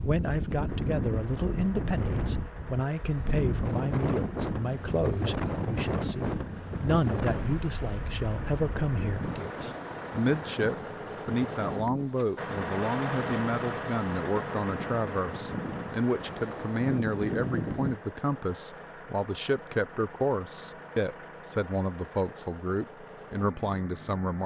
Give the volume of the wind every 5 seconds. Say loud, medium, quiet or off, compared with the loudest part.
loud, loud, medium, loud, off.